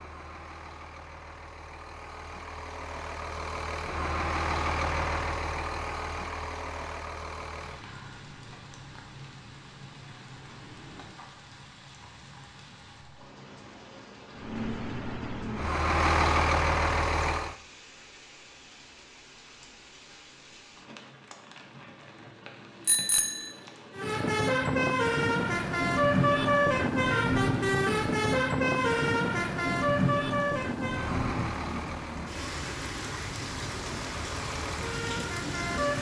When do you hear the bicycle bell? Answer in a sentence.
You can hear the bicycle bell from 22.9 to 23.5 s.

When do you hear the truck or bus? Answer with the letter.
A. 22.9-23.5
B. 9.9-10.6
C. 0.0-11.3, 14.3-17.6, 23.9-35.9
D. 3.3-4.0
C.